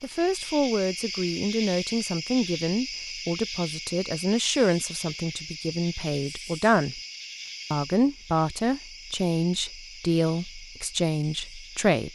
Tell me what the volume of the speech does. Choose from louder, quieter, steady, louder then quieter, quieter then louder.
steady.